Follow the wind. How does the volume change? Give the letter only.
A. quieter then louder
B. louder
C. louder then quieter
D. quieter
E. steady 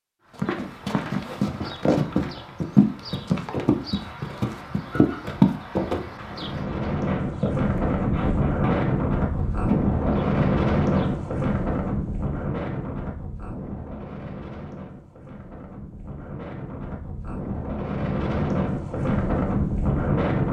A.